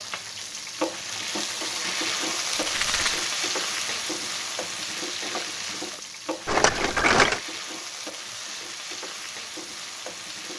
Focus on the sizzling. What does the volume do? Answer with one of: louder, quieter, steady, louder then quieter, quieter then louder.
quieter.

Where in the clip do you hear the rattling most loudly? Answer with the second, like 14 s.
7 s.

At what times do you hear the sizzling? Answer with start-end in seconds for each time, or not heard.
0.0-10.5.